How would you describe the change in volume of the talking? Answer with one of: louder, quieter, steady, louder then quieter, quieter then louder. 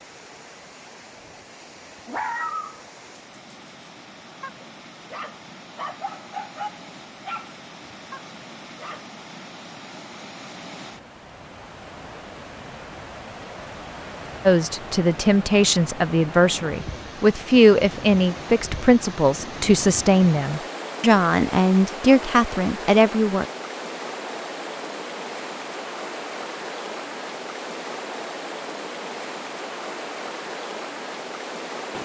steady.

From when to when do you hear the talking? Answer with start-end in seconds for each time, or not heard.
14.4-23.4.